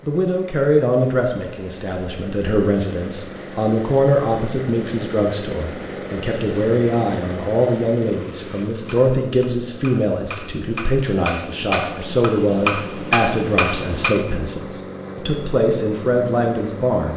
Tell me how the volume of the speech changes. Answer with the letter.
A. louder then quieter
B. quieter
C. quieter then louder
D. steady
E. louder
D.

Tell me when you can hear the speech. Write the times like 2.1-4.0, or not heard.
0.0-17.1.